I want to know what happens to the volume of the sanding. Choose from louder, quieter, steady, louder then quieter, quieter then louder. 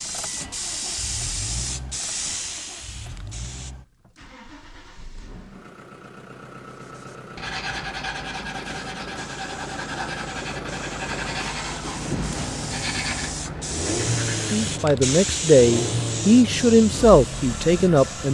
steady.